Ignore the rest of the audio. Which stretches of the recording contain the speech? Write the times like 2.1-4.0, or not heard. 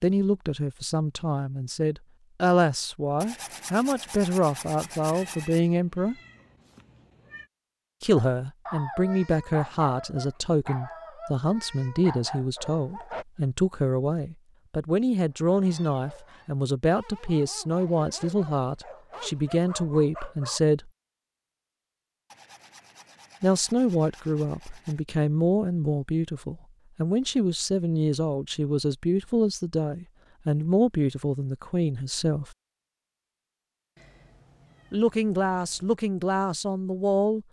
0.0-6.2, 8.0-20.9, 23.4-32.5, 34.9-37.4.